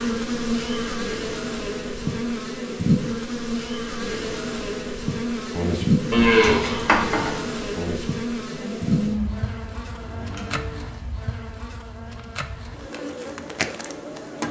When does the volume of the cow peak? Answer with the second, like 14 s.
6 s.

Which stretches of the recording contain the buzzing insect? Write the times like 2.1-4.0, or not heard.
0.0-14.4.